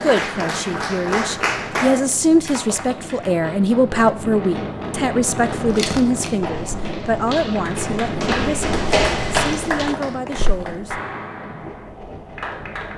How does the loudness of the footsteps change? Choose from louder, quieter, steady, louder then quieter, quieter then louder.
louder then quieter.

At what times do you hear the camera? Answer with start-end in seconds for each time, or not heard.
5.8-6.3.